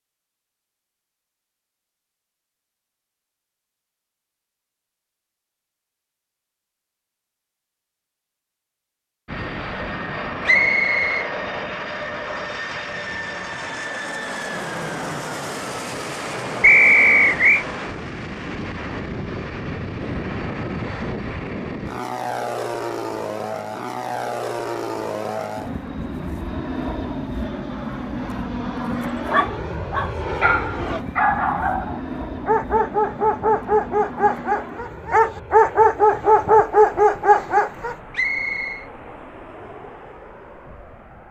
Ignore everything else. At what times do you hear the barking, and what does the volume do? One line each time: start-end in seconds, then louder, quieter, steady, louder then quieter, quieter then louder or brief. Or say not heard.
29.2-38.0 louder.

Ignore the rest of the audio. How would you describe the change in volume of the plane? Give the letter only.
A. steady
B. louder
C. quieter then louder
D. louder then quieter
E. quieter
E.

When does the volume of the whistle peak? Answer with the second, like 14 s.
17 s.